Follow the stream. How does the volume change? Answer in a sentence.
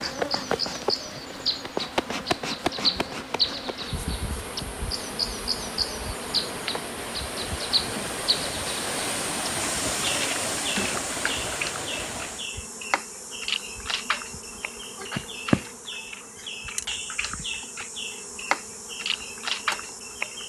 The volume of the stream goes up.